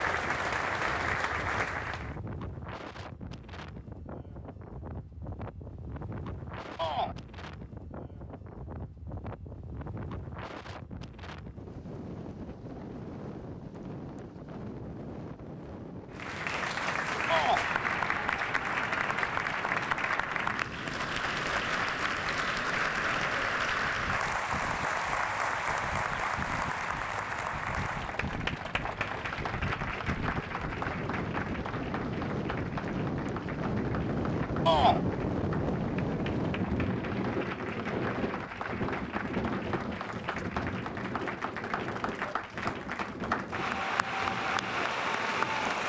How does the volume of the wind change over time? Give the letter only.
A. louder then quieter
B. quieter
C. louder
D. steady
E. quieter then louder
C.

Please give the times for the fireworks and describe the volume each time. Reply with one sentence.
The fireworks can't be heard in this clip.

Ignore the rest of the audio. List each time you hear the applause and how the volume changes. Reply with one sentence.
The applause can be heard briefly from 0.0 to 2.1 s; and from 16.1 to 45.8 s, getting quieter then louder.